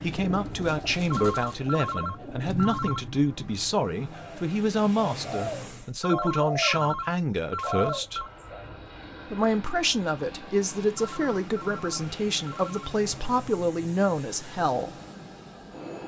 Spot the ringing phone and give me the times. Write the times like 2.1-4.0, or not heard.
1.1-3.0, 6.0-8.3, 10.9-12.9.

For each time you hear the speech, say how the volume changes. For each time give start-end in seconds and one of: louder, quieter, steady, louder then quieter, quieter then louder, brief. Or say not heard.
0.0-8.2 steady
9.3-14.9 steady.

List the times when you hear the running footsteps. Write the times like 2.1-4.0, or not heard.
not heard.